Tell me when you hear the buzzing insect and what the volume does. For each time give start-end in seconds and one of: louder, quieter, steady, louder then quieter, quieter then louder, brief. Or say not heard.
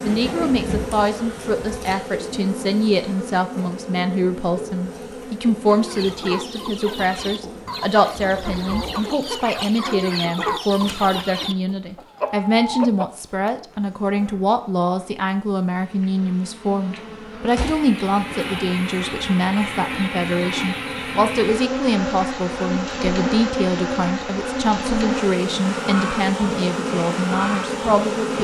0.0-28.3 quieter then louder.